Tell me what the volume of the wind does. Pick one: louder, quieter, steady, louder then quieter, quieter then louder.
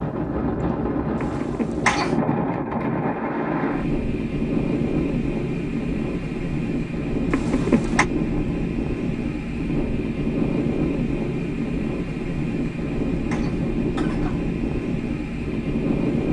steady.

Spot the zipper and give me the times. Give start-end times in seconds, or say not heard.
not heard.